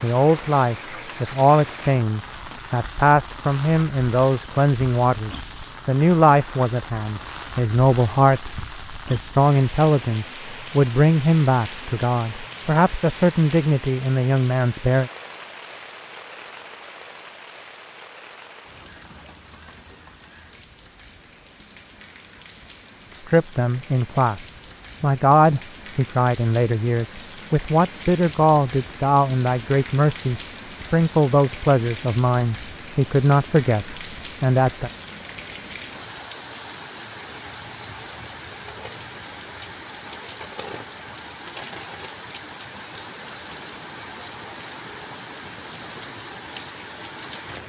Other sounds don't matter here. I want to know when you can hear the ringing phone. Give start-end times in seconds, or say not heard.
not heard.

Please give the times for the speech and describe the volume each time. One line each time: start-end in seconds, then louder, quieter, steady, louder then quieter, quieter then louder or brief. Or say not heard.
0.0-15.1 steady
23.1-34.9 steady.